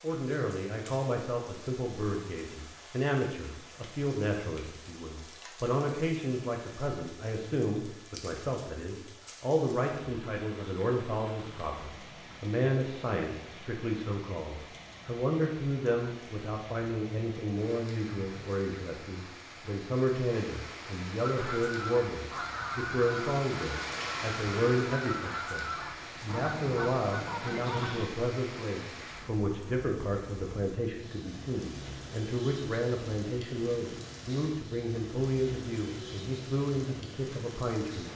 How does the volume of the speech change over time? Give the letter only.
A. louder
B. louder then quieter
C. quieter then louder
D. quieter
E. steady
E.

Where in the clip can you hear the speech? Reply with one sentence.
The speech can be heard from 0.0 to 38.1 s.